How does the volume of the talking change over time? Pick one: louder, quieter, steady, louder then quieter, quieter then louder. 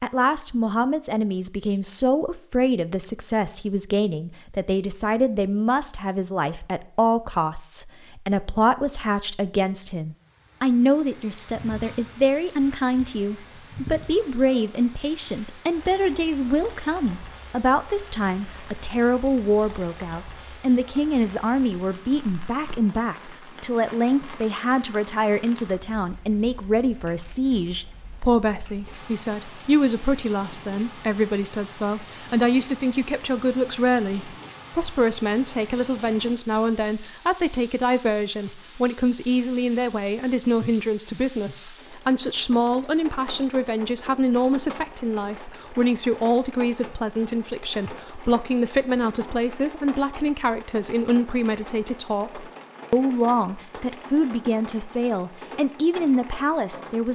steady.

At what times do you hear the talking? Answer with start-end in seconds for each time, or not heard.
0.0-57.1.